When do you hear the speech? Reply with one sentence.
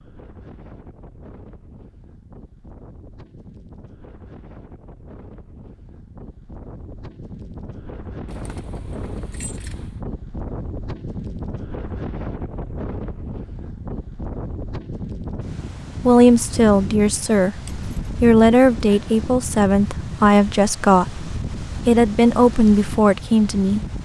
You can hear the speech from 16.0 to 23.8 s.